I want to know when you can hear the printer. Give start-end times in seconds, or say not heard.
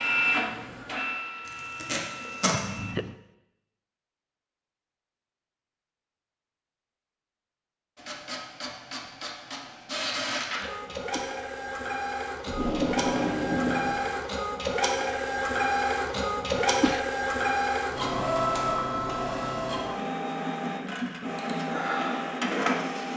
0.0-3.0, 8.0-23.1.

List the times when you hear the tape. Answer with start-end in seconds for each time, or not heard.
1.8-2.5, 12.4-14.0.